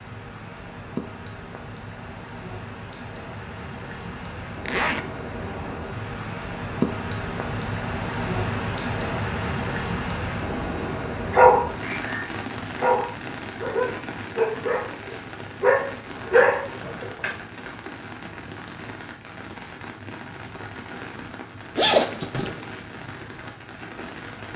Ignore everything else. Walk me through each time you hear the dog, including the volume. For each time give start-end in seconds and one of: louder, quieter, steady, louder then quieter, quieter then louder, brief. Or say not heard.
11.3-17.3 louder.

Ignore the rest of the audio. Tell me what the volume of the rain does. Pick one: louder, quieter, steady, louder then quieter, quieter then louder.
louder then quieter.